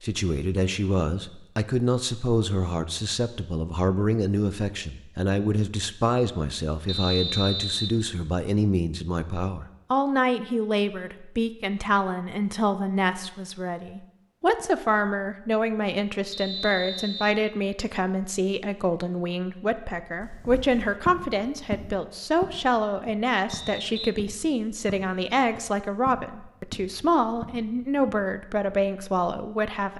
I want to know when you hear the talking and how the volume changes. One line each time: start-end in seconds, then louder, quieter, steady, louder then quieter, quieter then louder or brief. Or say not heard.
0.0-29.9 steady.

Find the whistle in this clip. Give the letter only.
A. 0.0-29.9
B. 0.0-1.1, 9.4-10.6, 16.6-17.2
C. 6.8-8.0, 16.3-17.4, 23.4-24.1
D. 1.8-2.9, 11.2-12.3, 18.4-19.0
C.